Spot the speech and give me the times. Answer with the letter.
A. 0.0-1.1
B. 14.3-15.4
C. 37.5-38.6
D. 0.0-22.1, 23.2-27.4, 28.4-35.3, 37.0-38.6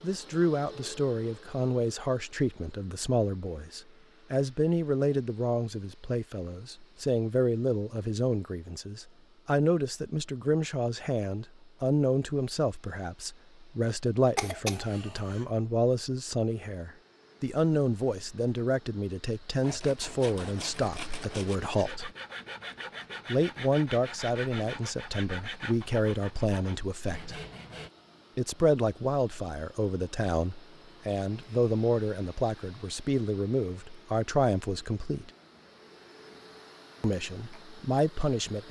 D.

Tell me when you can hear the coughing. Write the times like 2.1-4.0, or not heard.
14.3-15.4.